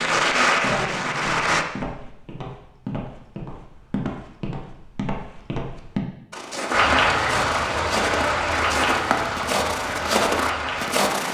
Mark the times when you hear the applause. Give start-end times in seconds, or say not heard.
0.0-1.6, 6.7-11.3.